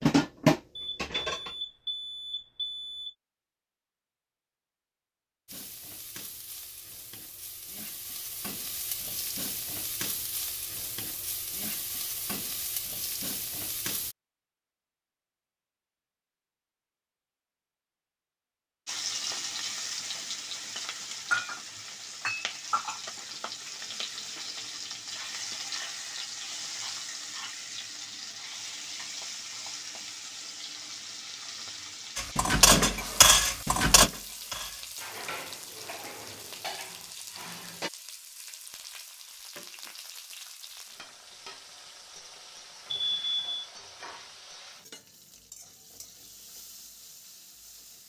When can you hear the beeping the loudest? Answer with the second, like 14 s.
43 s.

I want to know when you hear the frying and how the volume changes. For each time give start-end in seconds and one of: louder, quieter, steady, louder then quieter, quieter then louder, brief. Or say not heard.
5.5-14.2 louder
18.9-48.0 quieter.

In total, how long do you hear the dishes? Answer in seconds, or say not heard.
7 s.